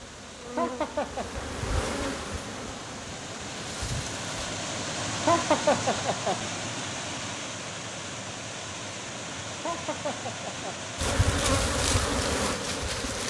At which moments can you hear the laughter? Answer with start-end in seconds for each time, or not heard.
0.6-1.4, 5.2-6.4, 9.6-10.8.